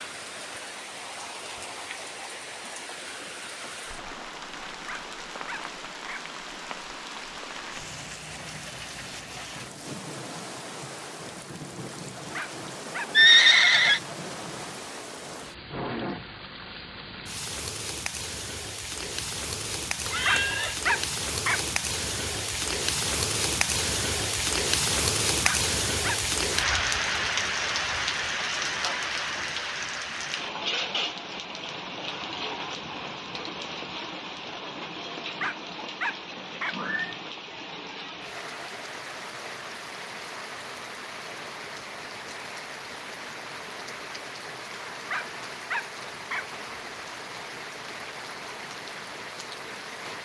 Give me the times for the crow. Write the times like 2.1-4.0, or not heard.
not heard.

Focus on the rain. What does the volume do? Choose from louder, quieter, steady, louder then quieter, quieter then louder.
louder then quieter.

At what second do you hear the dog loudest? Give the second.
21 s.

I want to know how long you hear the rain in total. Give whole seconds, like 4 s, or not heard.
50 s.